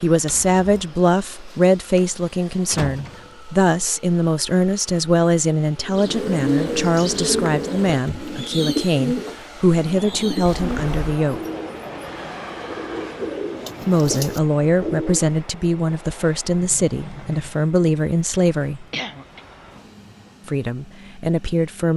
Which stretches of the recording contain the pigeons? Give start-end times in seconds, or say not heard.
5.8-15.3.